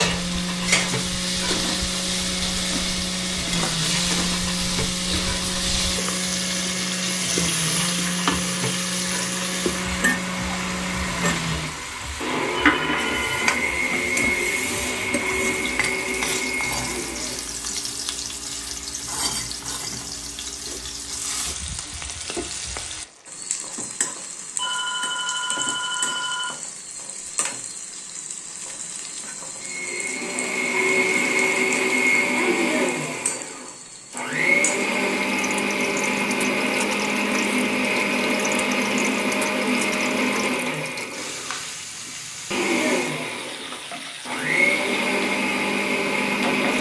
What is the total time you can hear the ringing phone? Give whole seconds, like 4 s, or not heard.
3 s.